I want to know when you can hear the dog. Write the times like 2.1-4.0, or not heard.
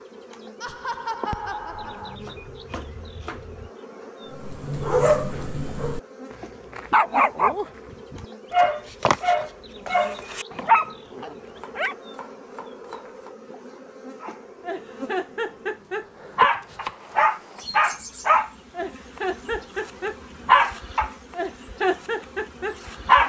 4.3-6.0, 6.7-11.9, 14.2-23.2.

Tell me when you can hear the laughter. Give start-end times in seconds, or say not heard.
0.6-2.2.